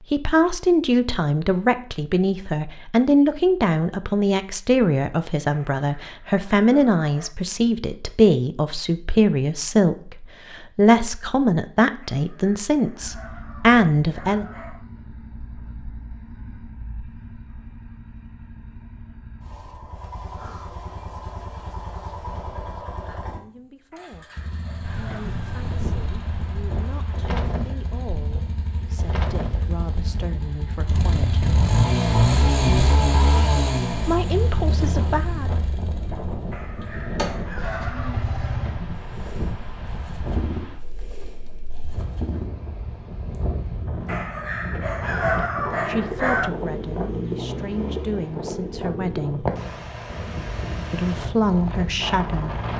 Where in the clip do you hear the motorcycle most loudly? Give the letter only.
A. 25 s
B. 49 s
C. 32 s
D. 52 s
C.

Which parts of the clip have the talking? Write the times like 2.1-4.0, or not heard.
0.1-14.4, 23.3-24.3, 24.9-31.9, 34.0-35.5, 45.9-49.5, 50.9-52.5.